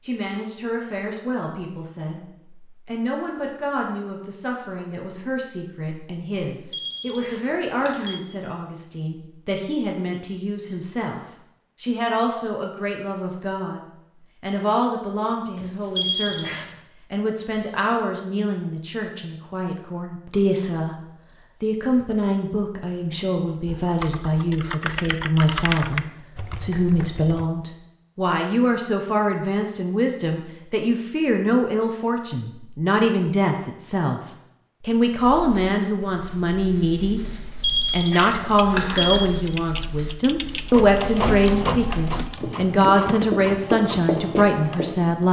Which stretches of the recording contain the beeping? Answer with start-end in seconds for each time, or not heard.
6.7-8.2, 15.6-16.7, 37.6-39.2.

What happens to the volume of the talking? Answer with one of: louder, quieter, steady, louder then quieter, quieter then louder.
louder.